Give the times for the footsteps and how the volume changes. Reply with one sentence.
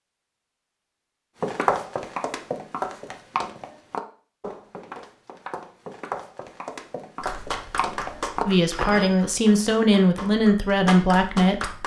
The footsteps can be heard from 1.4 to 9.2 s, getting quieter then louder.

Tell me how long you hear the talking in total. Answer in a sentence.
The talking can be heard for 3 seconds in total.